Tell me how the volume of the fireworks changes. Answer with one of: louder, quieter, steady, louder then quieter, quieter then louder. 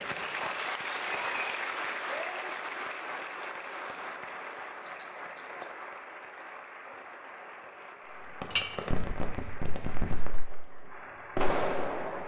quieter then louder.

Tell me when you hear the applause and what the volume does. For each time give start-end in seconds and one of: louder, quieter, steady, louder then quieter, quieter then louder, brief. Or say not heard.
0.0-12.2 quieter.